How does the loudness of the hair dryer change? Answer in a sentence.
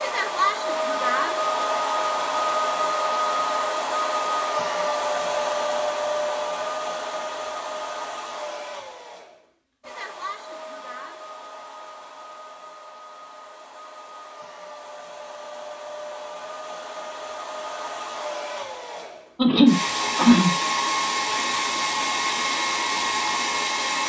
The loudness of the hair dryer goes down, then up.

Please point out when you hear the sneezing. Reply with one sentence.
You can hear the sneezing from 19.4 to 20.6 s.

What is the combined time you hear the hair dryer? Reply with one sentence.
You can hear the hair dryer for 24 seconds altogether.